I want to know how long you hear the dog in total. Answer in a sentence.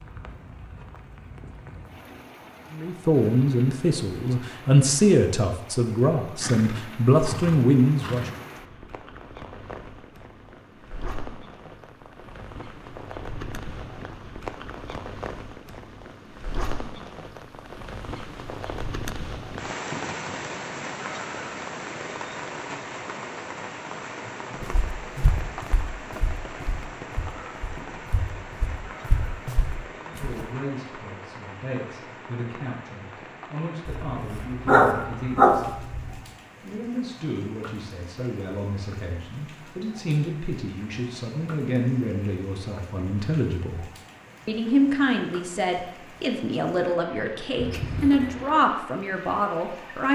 The dog can be heard for 2 seconds in total.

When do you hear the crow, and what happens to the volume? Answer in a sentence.
You can't hear the crow here.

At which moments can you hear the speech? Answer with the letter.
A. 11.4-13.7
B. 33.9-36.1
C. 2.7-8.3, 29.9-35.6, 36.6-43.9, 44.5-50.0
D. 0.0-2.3
C.